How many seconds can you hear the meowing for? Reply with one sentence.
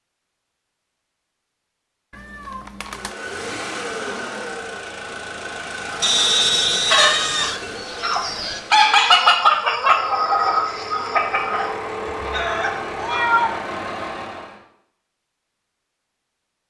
The meowing can be heard for 3 seconds in total.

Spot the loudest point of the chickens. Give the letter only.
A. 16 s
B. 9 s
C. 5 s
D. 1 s
B.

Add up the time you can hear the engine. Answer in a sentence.
The engine can be heard for 12 seconds in total.